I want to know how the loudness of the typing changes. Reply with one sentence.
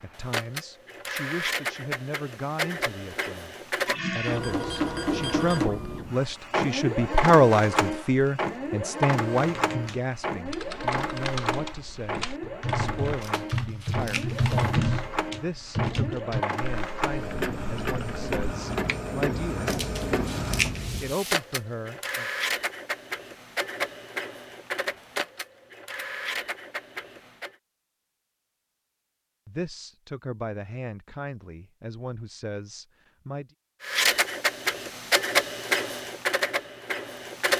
The loudness of the typing goes up, then down.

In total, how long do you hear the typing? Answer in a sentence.
You can hear the typing for 10 seconds altogether.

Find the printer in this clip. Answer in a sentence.
The printer can be heard from 0.1 to 27.6 s and from 33.8 to 37.5 s.